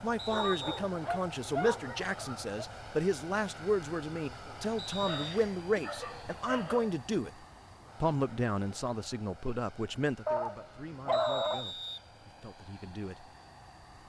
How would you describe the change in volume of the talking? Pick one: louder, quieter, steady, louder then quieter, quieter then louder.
quieter.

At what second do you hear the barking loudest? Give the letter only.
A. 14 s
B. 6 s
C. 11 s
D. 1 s
C.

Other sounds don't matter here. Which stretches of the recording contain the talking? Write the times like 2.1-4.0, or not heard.
0.0-7.3, 8.0-13.3.